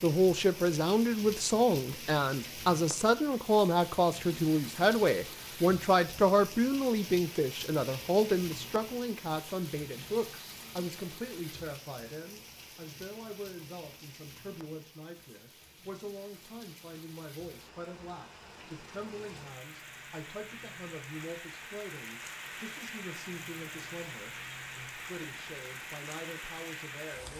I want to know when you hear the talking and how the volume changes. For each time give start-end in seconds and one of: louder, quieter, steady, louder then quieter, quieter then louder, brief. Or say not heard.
0.0-27.3 quieter.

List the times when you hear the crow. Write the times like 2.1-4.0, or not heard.
not heard.